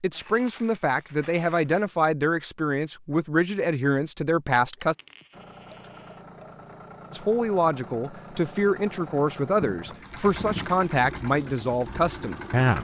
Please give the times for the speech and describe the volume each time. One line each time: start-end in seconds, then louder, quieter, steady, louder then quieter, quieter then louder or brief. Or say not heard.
0.0-5.0 steady
7.1-12.7 steady.